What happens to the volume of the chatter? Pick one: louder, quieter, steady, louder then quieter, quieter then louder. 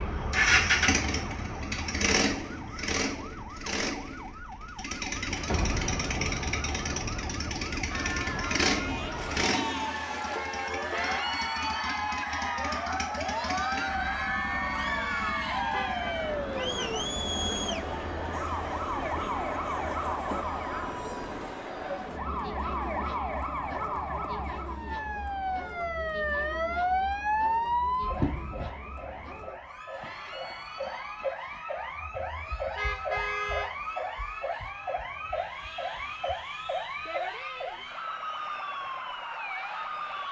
quieter.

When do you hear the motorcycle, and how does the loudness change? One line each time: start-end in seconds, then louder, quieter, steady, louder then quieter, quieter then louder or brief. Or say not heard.
0.0-24.9 quieter.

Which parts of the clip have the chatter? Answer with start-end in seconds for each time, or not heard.
7.8-40.2.